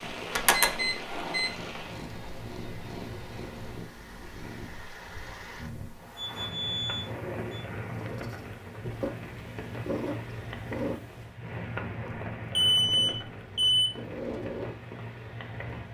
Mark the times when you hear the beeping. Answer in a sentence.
The beeping can be heard from 0.5 to 1.5 s, from 6.2 to 7.6 s and from 12.6 to 13.9 s.